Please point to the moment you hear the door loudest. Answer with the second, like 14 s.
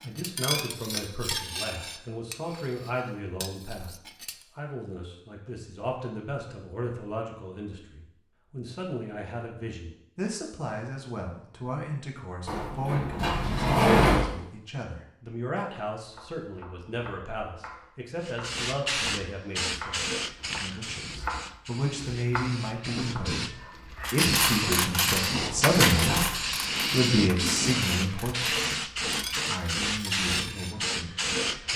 14 s.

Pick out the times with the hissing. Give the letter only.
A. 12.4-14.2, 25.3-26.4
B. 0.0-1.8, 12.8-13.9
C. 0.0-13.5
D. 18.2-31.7
D.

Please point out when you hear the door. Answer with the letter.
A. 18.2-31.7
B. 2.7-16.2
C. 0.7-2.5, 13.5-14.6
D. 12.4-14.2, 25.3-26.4
D.